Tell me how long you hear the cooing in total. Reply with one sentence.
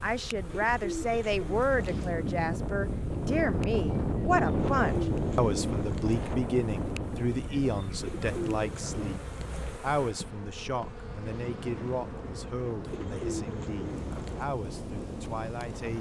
The cooing can be heard for 7 seconds in total.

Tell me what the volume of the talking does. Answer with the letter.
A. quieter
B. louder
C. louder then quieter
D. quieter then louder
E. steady
A.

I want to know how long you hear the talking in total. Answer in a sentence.
The talking can be heard for 16 seconds in total.